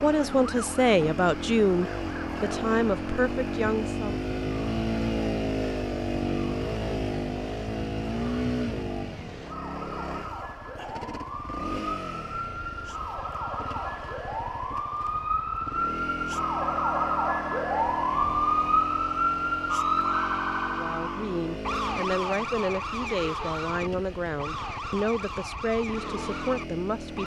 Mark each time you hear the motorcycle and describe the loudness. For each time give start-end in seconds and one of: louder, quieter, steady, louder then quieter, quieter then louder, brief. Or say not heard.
0.0-27.2 quieter.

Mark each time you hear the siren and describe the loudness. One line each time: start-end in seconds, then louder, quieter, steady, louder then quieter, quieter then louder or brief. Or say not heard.
0.0-27.2 louder then quieter.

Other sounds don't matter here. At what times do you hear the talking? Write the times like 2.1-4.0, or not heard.
0.0-4.2, 20.6-27.2.